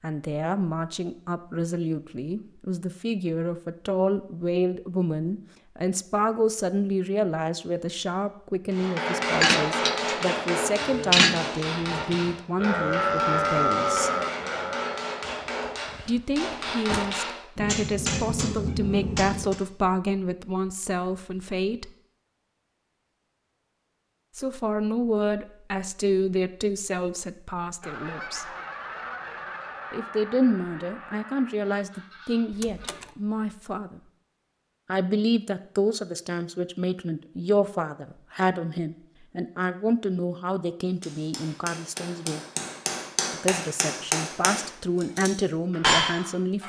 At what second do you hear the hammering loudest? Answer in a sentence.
The loudest moment of the hammering is at 46 seconds.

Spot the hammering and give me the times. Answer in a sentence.
The hammering can be heard from 8.7 to 19.6 s and from 41.0 to 46.6 s.